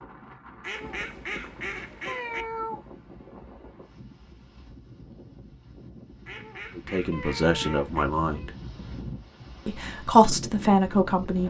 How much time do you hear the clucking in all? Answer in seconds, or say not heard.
4 s.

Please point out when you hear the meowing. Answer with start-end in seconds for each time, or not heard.
2.0-2.8, 7.1-8.5.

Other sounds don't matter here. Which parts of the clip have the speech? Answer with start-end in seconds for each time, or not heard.
6.8-8.5, 9.7-11.4.